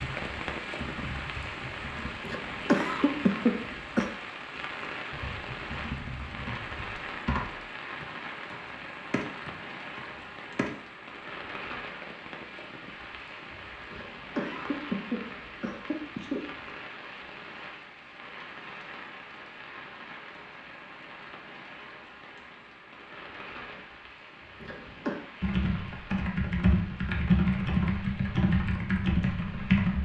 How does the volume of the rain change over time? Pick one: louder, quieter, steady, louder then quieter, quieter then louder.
quieter.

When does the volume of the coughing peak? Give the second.
3 s.